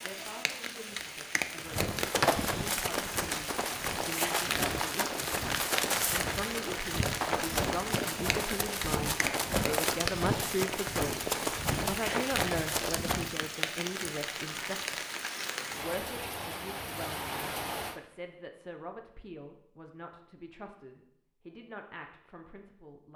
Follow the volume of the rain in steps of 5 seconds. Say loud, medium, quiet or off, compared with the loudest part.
loud, loud, loud, loud, off.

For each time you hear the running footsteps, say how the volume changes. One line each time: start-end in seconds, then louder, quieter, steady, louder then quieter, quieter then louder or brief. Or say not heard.
1.6-13.3 steady.